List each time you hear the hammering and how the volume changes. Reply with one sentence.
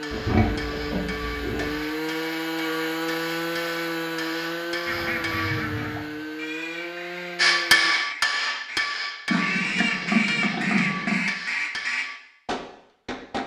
The hammering can be heard from 0.0 to 5.7 s, at a steady volume; and from 7.3 to 13.4 s, getting quieter.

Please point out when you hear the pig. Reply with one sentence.
The pig can be heard from 0.1 to 1.7 s and from 9.2 to 11.2 s.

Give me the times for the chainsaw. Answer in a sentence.
You can hear the chainsaw from 0.0 to 8.0 s.